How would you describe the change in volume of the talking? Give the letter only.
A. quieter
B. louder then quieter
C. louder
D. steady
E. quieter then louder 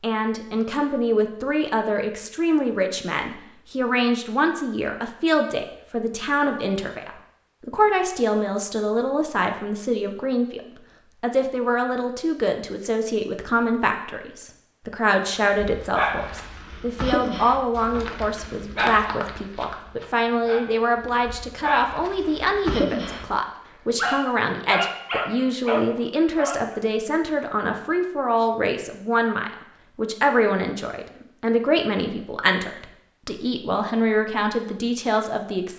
D.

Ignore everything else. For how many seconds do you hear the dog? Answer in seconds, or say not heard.
11 s.